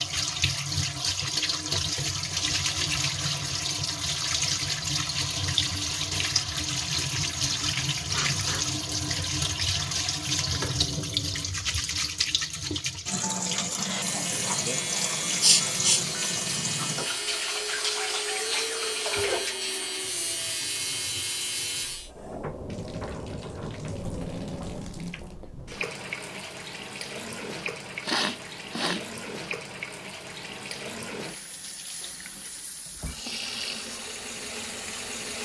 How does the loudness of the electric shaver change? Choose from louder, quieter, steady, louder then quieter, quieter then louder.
steady.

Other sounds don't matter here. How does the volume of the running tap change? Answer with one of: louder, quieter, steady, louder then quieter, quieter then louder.
quieter.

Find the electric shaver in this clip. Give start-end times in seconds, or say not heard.
13.8-22.1.